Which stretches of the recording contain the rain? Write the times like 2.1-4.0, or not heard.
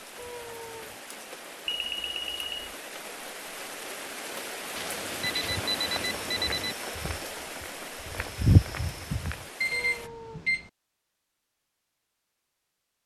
0.0-10.1.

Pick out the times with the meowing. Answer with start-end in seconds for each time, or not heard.
0.1-1.0, 9.7-10.5.